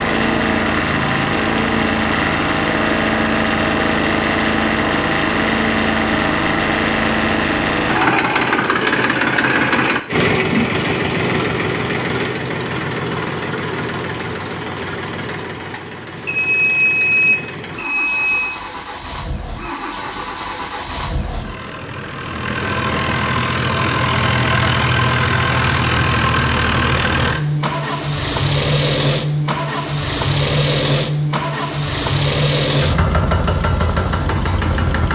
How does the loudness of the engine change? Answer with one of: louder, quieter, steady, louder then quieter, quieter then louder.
quieter then louder.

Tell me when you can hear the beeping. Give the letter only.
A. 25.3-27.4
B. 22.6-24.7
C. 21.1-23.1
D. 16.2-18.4
D.